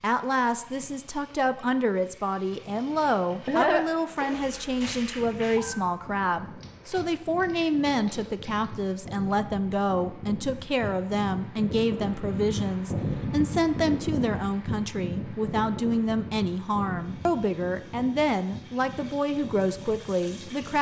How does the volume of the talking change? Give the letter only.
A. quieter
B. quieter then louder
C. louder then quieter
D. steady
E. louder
D.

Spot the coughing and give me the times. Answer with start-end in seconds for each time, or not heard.
3.0-4.3.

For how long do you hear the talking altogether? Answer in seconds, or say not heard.
21 s.